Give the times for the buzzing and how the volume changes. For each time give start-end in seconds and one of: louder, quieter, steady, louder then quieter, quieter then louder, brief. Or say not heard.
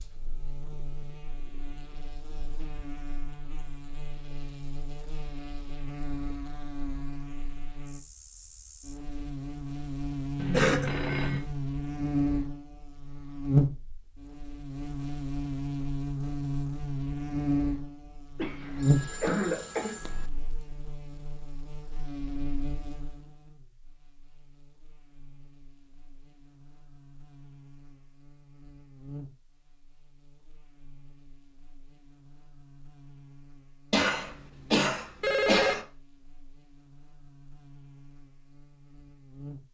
0.0-39.6 louder then quieter.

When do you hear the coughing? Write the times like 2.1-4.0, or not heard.
10.5-10.9, 18.4-19.9, 33.9-35.9.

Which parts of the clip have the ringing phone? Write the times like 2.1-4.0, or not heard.
10.3-11.4, 18.8-20.2, 35.2-35.9.